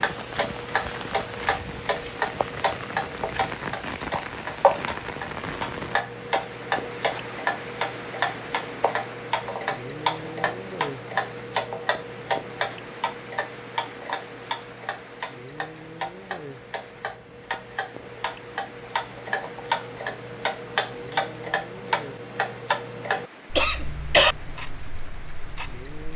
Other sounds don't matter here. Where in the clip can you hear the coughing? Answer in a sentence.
You can hear the coughing from 23.6 to 24.4 s.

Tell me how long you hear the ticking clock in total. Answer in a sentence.
You can hear the ticking clock for 26 seconds altogether.